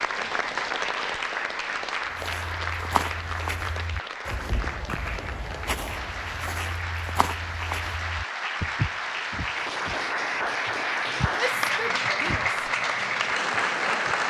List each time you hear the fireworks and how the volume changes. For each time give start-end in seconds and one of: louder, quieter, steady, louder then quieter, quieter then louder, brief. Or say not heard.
not heard.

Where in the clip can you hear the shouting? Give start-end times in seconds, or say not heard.
11.3-12.6.